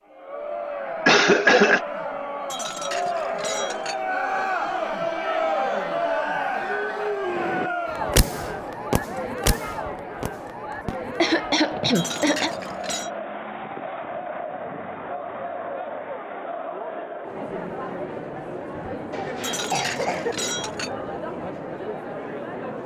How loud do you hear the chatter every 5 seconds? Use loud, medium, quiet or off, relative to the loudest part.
loud, loud, medium, medium, medium.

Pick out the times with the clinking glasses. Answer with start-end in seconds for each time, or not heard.
2.5-4.0, 11.9-13.1, 19.4-20.9.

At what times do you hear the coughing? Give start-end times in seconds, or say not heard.
1.1-1.8, 11.1-12.5, 19.1-20.4.